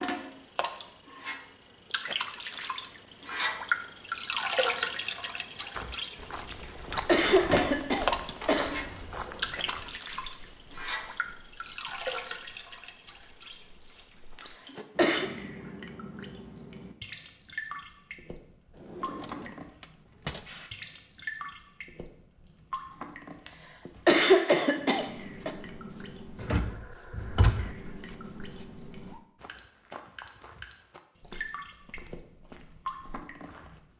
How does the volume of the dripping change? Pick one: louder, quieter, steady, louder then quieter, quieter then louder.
quieter.